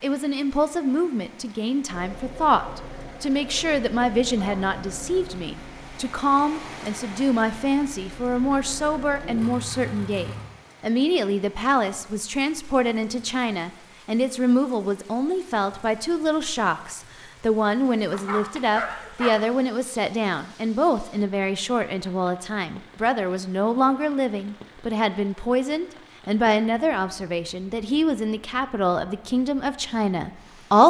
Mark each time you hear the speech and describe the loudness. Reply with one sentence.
The speech can be heard from 0.0 to 30.8 s, at a steady volume.